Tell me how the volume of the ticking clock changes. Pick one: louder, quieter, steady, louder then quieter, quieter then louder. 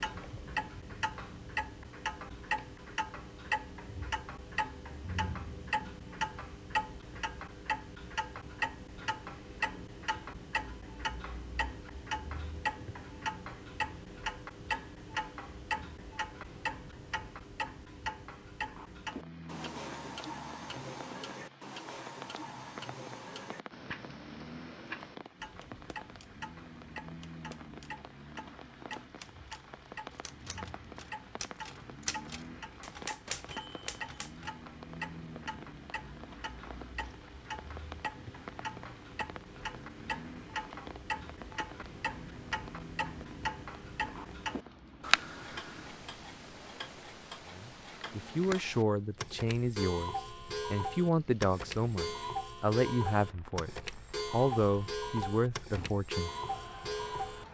quieter then louder.